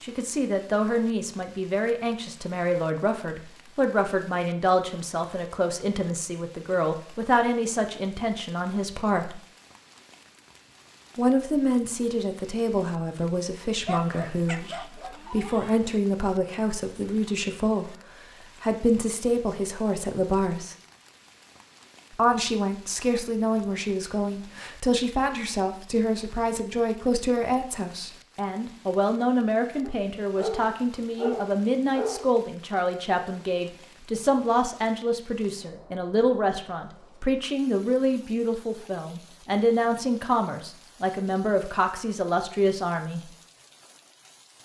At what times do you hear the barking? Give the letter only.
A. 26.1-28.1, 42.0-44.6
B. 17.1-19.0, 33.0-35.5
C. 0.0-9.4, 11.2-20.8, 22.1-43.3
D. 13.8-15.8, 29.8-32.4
D.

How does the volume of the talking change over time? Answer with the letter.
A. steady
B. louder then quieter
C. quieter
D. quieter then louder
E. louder
A.